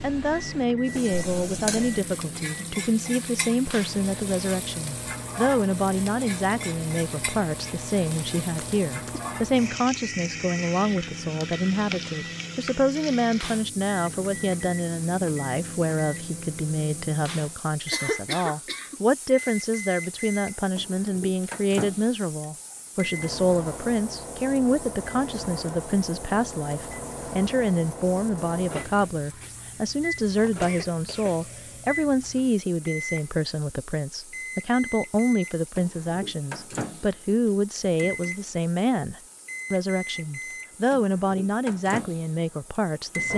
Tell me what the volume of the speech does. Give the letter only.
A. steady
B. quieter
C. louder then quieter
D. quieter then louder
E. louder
A.